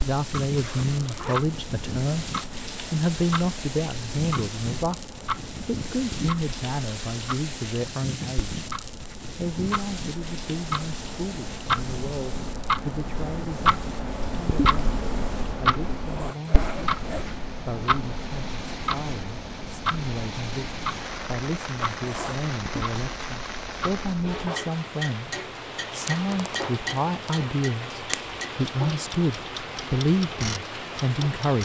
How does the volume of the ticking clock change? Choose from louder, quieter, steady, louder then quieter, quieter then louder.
louder then quieter.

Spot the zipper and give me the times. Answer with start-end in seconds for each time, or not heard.
0.5-1.6, 16.0-17.4, 21.9-22.4.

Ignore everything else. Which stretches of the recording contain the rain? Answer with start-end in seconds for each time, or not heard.
0.0-31.6.